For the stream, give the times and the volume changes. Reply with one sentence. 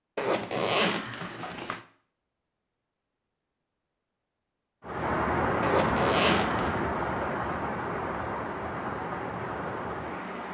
The stream can be heard from 4.8 to 10.4 s, getting quieter.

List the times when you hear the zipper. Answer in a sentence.
You can hear the zipper from 0.1 to 1.8 s and from 5.6 to 6.8 s.